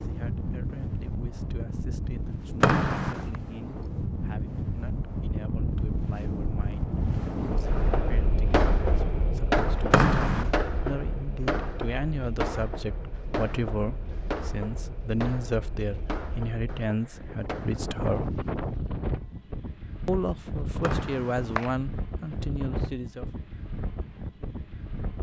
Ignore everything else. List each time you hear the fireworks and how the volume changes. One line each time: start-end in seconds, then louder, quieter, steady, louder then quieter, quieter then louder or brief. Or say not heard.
7.7-17.9 quieter.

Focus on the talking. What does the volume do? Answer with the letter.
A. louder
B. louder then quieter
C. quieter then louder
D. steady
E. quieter
A.